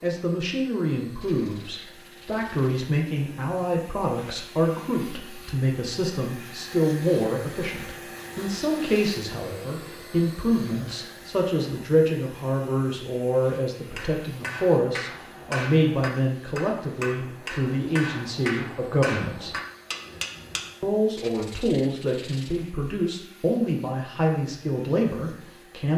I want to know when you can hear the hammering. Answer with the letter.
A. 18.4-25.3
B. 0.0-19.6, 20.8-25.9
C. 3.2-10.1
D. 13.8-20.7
D.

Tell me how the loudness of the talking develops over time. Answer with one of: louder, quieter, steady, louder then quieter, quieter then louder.
steady.